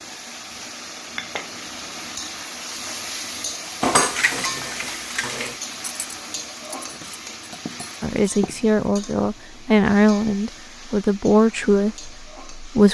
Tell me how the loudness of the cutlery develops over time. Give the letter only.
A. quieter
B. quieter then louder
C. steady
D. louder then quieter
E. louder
B.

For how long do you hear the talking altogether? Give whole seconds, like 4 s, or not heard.
5 s.